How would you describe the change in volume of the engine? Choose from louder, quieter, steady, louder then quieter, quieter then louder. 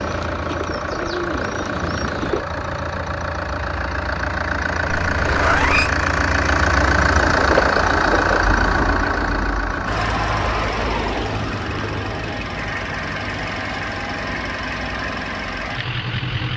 louder then quieter.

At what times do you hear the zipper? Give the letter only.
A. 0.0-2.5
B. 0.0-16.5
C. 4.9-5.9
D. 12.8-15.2
C.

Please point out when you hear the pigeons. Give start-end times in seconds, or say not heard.
0.0-2.5.